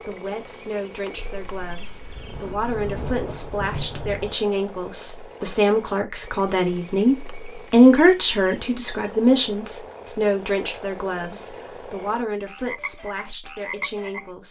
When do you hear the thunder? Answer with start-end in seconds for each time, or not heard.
1.1-4.3.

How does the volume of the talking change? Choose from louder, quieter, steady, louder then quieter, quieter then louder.
louder then quieter.